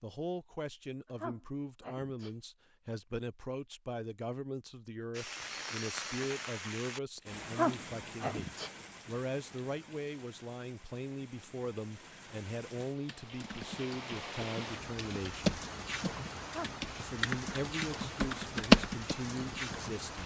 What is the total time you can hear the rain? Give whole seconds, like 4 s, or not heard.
15 s.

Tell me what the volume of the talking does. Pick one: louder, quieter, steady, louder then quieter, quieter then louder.
steady.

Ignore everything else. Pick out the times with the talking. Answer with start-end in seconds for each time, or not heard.
0.0-15.5, 16.9-20.2.